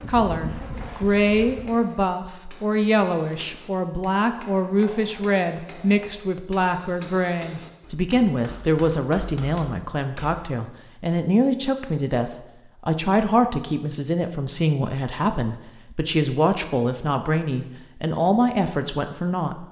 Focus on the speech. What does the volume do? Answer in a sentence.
The loudness of the speech stays about the same.